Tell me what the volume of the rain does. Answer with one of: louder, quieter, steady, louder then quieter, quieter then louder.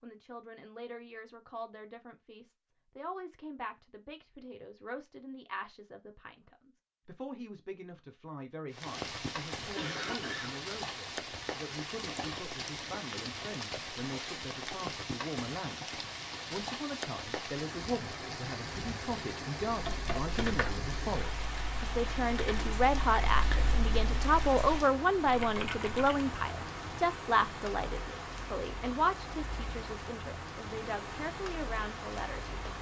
steady.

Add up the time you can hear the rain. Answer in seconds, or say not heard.
24 s.